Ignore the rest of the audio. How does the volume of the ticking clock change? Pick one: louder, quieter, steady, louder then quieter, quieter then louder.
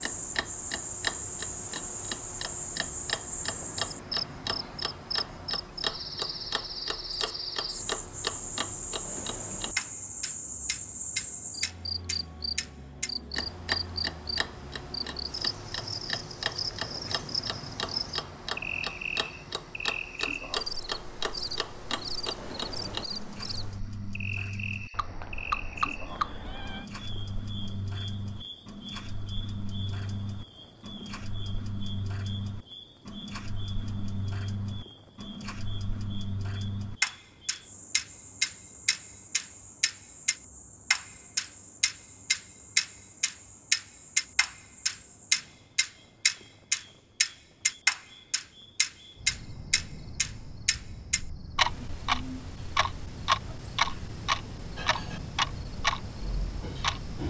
louder.